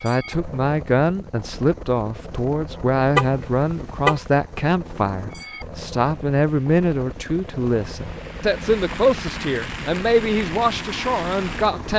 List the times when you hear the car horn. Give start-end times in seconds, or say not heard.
3.1-4.2.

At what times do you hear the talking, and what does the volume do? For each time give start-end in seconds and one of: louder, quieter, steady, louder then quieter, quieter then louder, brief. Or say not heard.
0.0-11.9 steady.